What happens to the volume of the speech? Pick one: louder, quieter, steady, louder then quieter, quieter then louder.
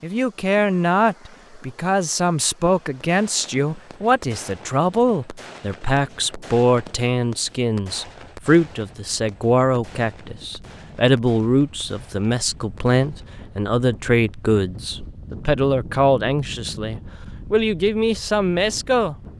steady.